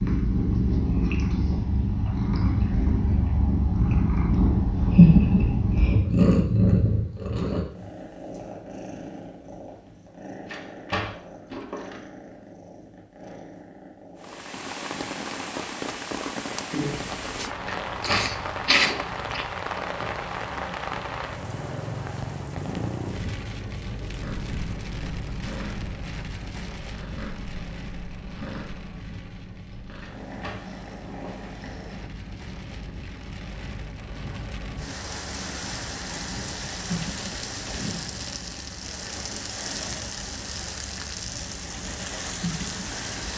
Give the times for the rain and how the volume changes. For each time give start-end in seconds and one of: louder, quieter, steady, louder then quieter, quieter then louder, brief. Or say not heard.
14.2-43.3 quieter then louder.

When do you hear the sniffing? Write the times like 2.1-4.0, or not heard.
18.0-19.4.